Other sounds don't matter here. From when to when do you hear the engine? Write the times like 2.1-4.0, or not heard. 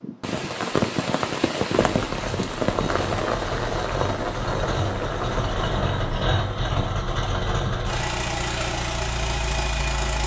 2.0-10.2.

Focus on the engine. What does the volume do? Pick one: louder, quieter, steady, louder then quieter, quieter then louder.
louder.